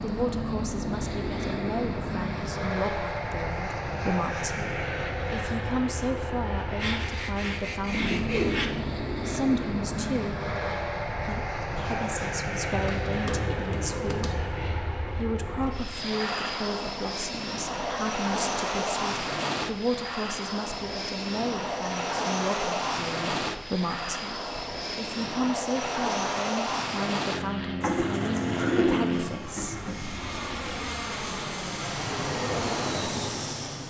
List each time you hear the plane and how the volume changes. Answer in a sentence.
The plane can be heard from 0.0 to 33.8 s, at a steady volume.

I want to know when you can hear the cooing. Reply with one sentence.
The cooing can be heard from 6.8 to 8.7 s, from 12.8 to 14.8 s and from 27.8 to 30.1 s.